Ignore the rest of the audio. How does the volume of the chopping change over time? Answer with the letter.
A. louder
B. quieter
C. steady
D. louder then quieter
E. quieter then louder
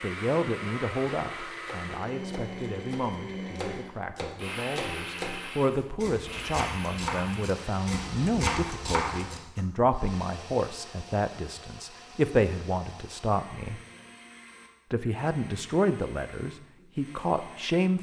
A.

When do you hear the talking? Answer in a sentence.
You can hear the talking from 0.0 to 13.8 s and from 14.9 to 17.9 s.